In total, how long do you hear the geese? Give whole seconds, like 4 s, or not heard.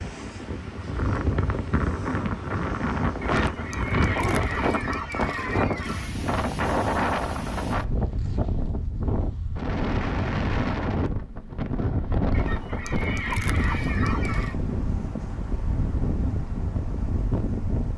5 s.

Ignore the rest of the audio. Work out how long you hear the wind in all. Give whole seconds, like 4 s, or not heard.
18 s.